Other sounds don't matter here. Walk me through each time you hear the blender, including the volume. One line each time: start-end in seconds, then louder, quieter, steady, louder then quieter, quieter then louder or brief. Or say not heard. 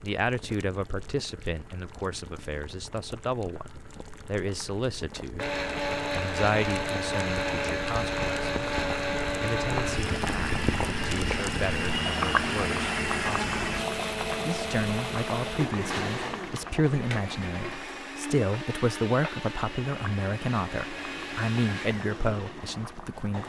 5.3-23.4 quieter.